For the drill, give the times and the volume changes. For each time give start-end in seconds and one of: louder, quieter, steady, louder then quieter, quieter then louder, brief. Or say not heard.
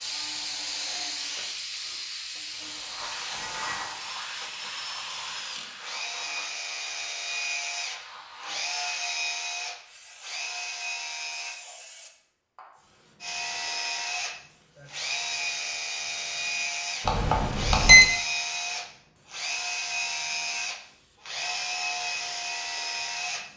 0.0-11.6 louder
13.2-23.4 steady.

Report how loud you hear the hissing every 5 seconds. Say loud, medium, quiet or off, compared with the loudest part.
loud, medium, quiet, quiet, quiet.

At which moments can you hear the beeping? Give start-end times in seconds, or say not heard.
17.1-18.1.